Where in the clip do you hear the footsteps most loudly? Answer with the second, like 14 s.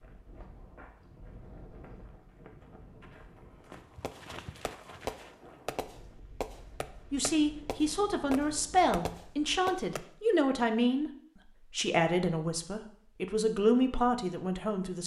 4 s.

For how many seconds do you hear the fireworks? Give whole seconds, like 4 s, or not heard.
6 s.